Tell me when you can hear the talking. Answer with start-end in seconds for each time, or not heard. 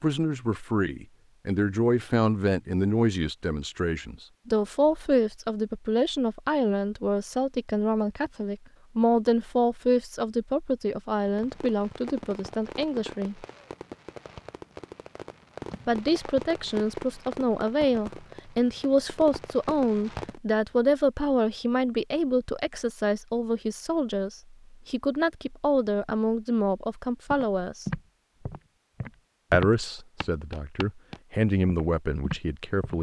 0.0-13.4, 15.8-27.9, 29.5-32.9.